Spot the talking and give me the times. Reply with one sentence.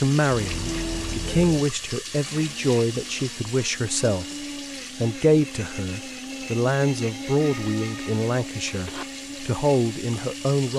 The talking can be heard from 0.0 to 4.2 s and from 5.0 to 10.7 s.